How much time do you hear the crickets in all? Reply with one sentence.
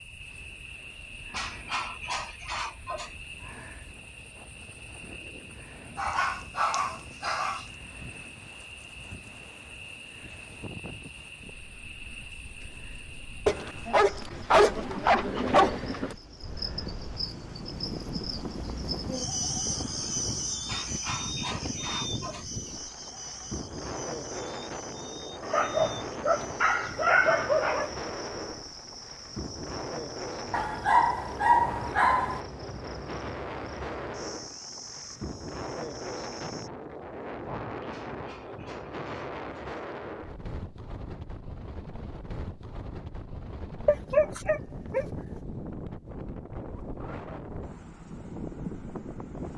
You can hear the crickets for 37 seconds altogether.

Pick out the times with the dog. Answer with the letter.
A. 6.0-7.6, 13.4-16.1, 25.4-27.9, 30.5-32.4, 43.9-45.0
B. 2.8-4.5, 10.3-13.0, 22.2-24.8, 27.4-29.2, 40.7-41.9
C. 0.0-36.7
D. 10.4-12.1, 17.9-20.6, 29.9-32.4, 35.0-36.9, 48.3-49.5
A.